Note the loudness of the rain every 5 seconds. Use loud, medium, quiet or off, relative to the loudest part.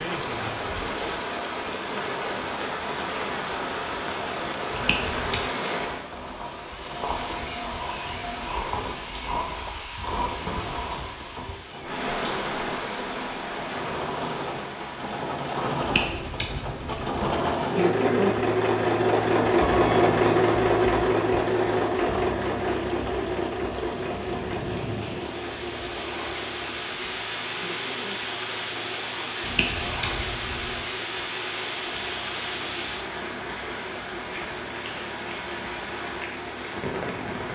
loud, loud, loud, medium, medium, loud, loud, loud.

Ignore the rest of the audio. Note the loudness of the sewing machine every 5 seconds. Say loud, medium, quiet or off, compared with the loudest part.
quiet, quiet, quiet, loud, loud, quiet, quiet, quiet.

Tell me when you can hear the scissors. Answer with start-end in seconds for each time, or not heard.
4.7-5.4, 15.8-17.1, 29.4-30.8.